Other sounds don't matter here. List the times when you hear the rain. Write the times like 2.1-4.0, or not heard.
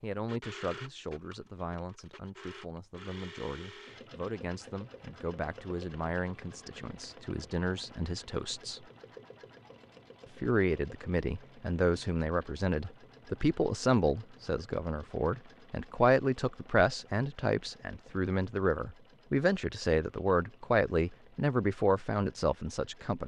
not heard.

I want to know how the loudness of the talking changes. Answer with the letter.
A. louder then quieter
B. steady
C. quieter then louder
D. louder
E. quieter
D.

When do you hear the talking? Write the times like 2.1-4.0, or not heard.
0.0-8.8, 10.4-23.2.